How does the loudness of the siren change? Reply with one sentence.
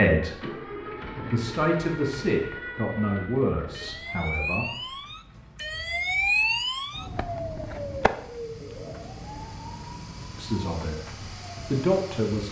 The loudness of the siren goes up, then down.